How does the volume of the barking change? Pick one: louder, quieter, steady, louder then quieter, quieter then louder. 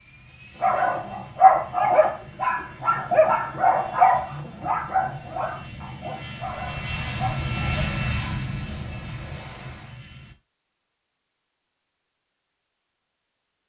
quieter.